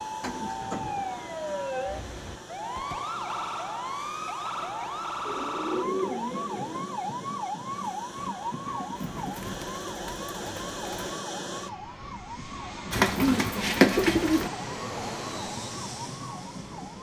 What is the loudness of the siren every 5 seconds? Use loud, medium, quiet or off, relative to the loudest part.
loud, loud, medium, medium.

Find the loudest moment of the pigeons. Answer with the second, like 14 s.
14 s.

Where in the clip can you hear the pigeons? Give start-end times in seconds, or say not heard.
0.2-1.6, 5.2-6.9, 9.1-11.2, 12.9-14.5.